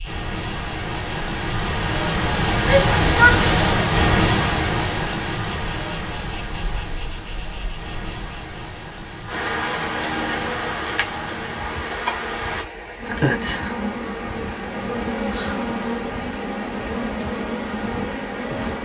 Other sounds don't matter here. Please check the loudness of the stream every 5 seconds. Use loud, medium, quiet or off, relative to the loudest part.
loud, medium, quiet, quiet.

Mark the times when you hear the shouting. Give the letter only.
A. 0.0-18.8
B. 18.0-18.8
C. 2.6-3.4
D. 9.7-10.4
C.